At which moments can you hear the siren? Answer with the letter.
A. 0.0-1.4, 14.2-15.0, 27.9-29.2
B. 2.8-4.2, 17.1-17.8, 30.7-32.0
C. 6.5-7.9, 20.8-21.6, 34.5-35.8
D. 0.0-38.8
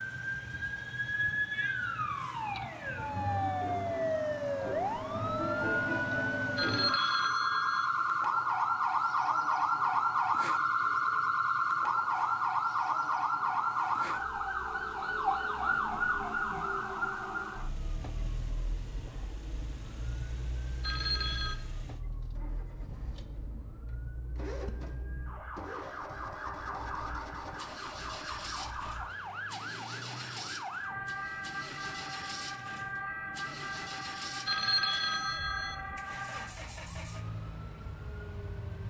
D.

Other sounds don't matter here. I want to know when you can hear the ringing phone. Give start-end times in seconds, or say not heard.
6.5-7.9, 20.8-21.6, 34.5-35.8.